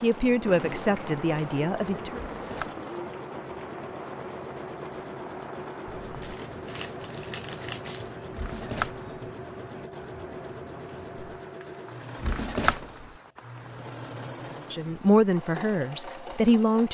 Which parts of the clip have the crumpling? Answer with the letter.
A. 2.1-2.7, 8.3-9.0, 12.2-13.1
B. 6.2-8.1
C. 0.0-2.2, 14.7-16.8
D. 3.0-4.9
B.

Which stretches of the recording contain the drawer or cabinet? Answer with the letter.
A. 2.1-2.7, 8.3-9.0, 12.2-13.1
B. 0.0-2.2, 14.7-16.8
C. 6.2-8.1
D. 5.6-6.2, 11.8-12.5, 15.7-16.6
A.